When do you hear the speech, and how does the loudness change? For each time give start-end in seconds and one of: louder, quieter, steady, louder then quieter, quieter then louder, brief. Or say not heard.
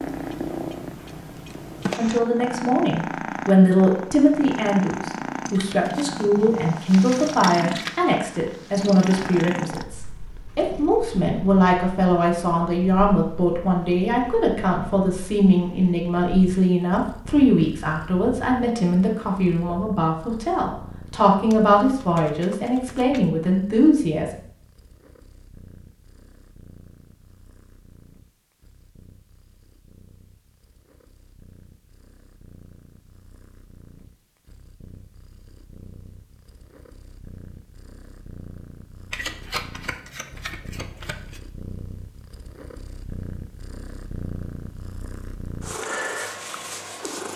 1.9-24.3 steady.